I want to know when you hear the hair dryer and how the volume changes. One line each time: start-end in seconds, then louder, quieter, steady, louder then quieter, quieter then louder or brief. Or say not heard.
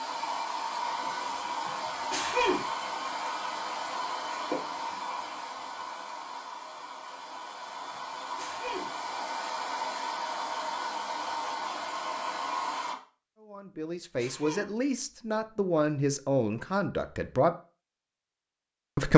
0.0-12.9 quieter then louder.